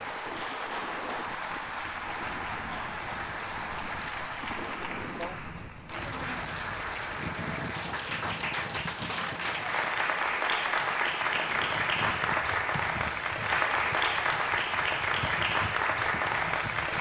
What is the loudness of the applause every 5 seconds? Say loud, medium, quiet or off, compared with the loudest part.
medium, medium, loud, loud.